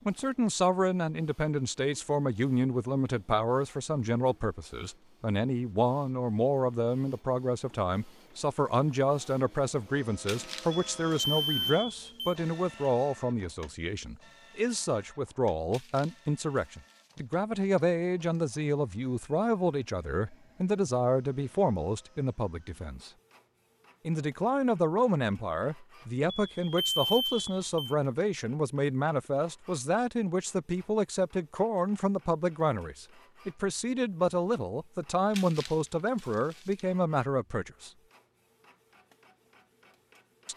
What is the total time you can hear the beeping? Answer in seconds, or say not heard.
3 s.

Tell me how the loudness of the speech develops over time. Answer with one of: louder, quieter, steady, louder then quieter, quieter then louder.
steady.